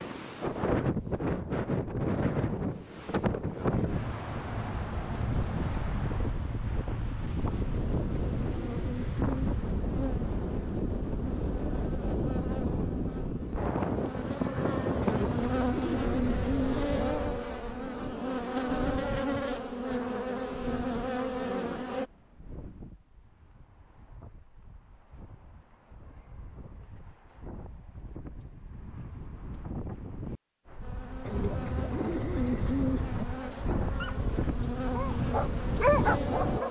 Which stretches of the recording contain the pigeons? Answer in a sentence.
You can hear the pigeons from 7.7 to 9.6 s, from 15.0 to 17.1 s and from 31.2 to 33.2 s.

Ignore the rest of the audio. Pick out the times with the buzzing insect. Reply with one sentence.
You can hear the buzzing insect from 7.5 to 22.1 s and from 30.8 to 36.6 s.